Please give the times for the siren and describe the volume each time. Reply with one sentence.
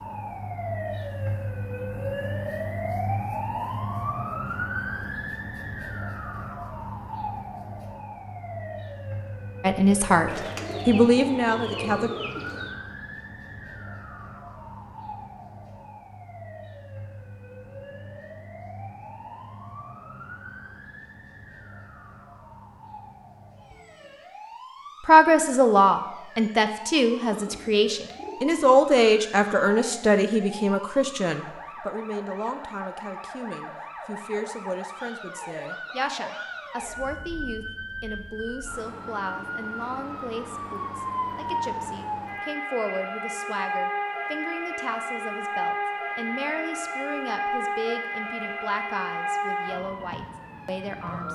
The siren can be heard from 0.0 to 51.3 s, getting quieter then louder.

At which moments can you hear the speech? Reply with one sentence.
The speech can be heard from 9.6 to 12.1 s and from 25.0 to 51.3 s.